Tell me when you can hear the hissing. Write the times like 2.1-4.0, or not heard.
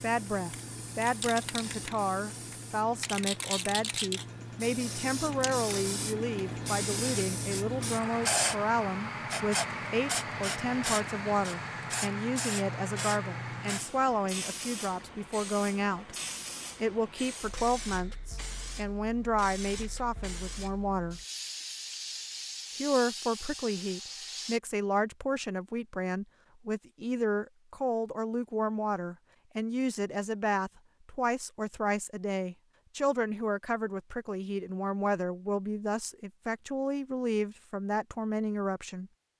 0.0-24.6.